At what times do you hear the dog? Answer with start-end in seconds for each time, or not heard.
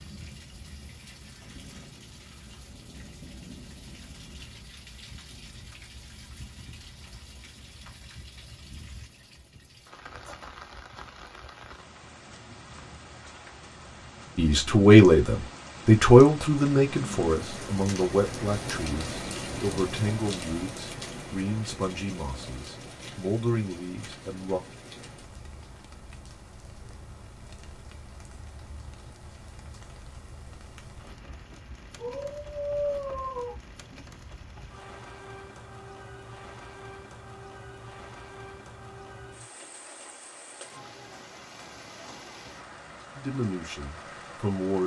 31.9-33.5.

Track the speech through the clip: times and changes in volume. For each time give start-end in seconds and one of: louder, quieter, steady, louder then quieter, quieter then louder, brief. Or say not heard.
14.3-24.6 quieter
43.1-44.8 brief.